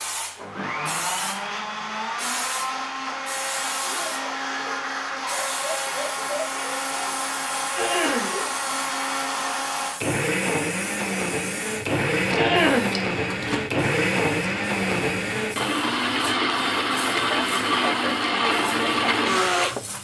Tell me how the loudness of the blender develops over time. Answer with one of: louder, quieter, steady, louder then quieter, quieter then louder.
louder.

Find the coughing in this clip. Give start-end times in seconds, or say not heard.
7.8-8.3, 12.3-12.9.